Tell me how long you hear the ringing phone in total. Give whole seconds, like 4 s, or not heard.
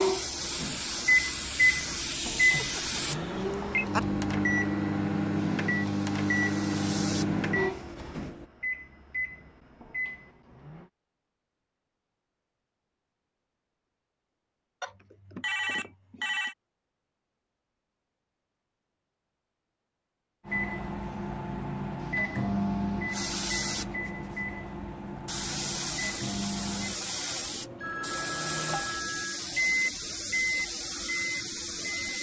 5 s.